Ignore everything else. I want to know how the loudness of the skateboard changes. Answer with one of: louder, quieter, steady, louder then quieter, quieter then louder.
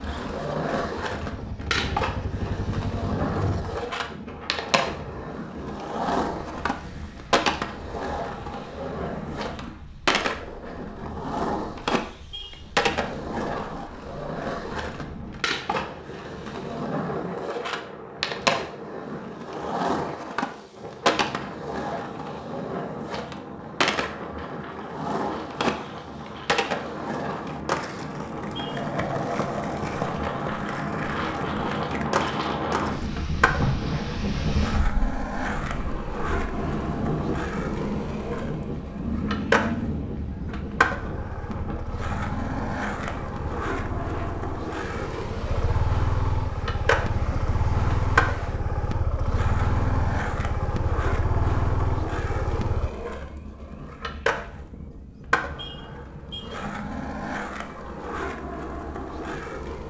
steady.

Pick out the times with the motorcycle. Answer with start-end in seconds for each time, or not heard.
0.0-3.9, 39.0-52.9.